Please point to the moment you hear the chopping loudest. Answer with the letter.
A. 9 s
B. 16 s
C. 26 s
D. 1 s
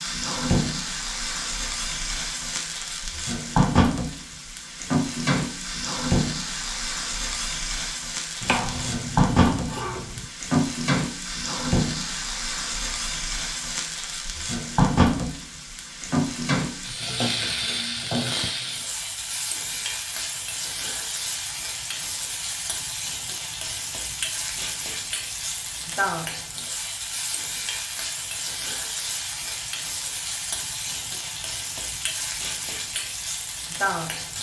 A.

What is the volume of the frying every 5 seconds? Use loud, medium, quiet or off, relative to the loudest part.
loud, loud, loud, loud, medium, medium, medium.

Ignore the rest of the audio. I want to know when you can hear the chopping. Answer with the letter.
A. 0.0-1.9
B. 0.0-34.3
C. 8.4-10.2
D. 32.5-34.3
C.